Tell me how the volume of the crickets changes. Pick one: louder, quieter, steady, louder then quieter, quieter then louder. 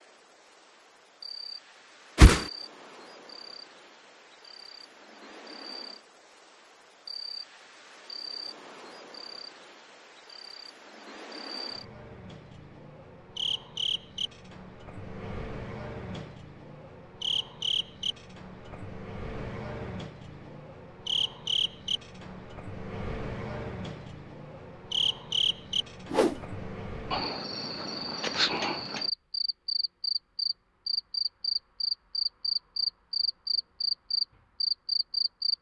louder.